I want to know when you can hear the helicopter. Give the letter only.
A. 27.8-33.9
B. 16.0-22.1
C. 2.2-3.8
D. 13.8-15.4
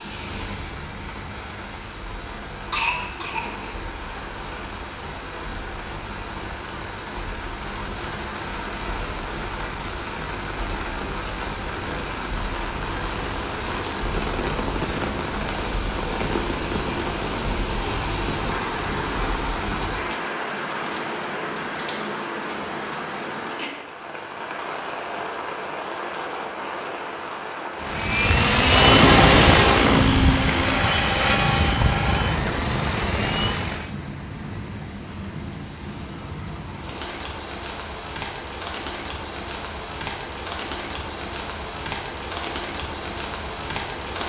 A.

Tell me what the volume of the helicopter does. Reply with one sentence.
The loudness of the helicopter goes down.